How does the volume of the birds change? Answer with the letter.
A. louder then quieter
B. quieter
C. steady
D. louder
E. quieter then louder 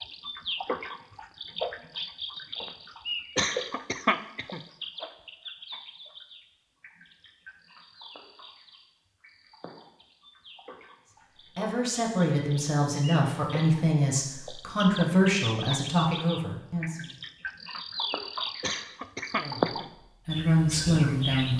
E.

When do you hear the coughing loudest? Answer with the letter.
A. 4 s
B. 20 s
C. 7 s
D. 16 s
A.